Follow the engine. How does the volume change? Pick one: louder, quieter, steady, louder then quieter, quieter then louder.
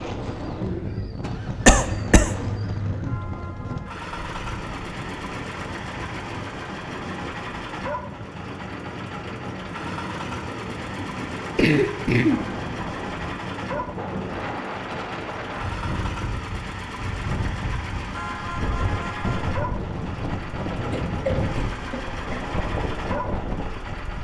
steady.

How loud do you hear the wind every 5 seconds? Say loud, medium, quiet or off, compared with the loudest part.
loud, medium, loud, loud, loud.